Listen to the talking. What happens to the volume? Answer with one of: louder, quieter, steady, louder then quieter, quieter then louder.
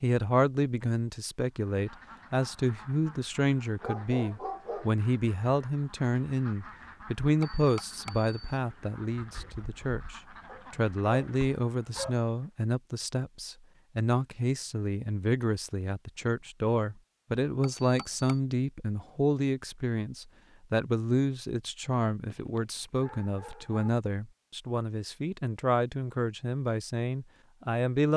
steady.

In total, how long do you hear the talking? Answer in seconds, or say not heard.
28 s.